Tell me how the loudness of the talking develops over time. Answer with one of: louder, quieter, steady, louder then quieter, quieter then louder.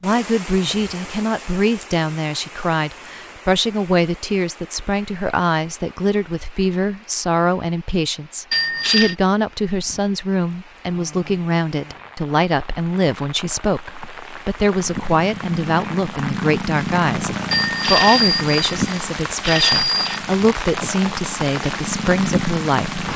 steady.